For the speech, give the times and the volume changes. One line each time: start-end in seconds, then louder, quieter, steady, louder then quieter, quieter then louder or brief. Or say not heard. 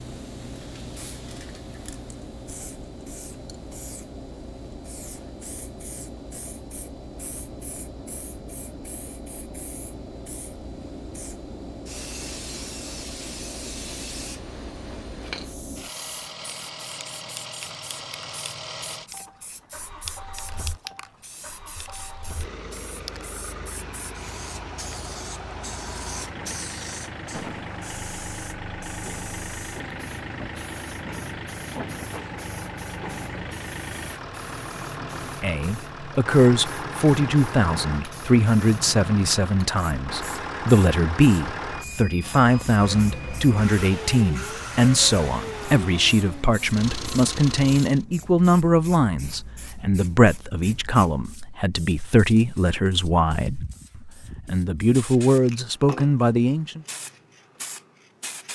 35.4-56.8 steady.